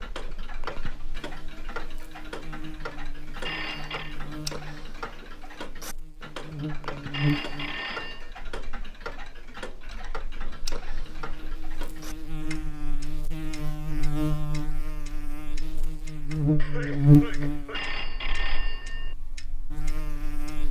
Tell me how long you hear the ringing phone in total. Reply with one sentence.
The ringing phone can be heard for 3 seconds in total.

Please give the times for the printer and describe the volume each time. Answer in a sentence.
You can't hear the printer here.